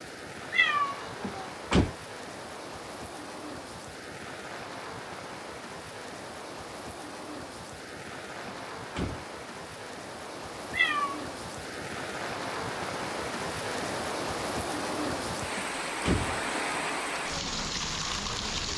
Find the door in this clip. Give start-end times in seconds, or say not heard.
1.2-1.9, 8.4-9.2, 15.6-16.4.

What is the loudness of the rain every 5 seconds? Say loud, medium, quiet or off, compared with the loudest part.
medium, medium, loud, loud.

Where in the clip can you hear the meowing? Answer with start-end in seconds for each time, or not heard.
0.5-1.4, 10.7-11.2.